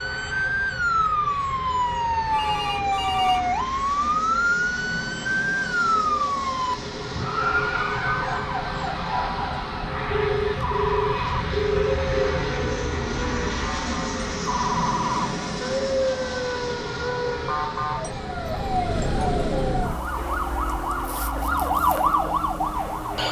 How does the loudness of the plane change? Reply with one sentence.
The volume of the plane goes up, then down.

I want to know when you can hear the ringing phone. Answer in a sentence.
You can hear the ringing phone from 2.3 to 3.5 s, from 10.1 to 12.3 s and from 20.1 to 21.2 s.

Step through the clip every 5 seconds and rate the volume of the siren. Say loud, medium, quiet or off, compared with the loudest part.
loud, loud, medium, loud, loud.